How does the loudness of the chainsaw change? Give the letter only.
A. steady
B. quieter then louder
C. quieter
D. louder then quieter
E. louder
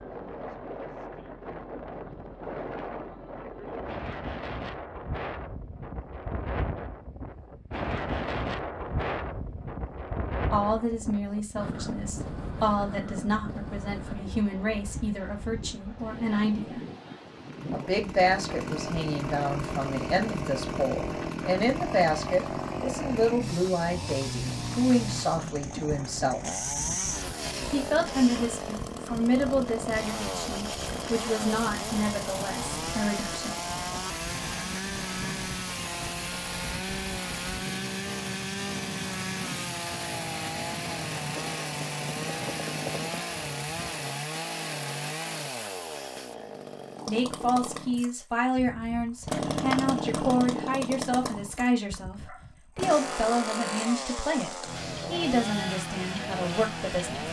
A.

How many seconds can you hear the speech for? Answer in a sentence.
You can hear the speech for 31 seconds altogether.